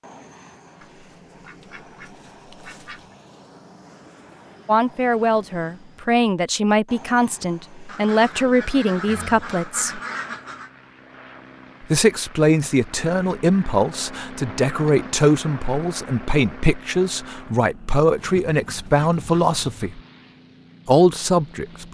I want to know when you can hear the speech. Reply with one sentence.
You can hear the speech from 4.7 to 10.0 s, from 11.8 to 20.0 s and from 20.9 to 21.9 s.